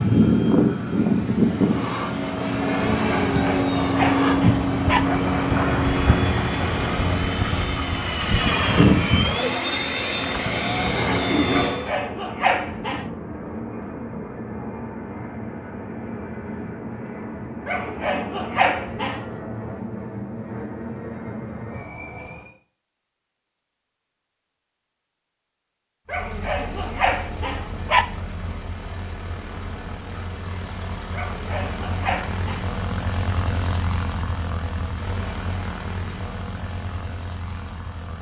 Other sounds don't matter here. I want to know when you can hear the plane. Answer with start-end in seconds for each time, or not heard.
0.0-22.6, 26.1-38.1.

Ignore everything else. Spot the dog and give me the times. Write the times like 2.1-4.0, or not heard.
3.3-5.0, 11.5-13.1, 17.6-19.2, 26.1-28.1, 31.1-32.6.